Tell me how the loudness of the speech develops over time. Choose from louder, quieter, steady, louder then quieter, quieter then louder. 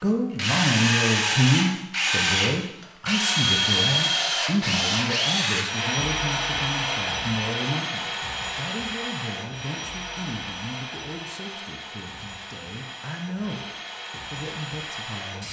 quieter.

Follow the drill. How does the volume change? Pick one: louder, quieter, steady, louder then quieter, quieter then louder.
quieter.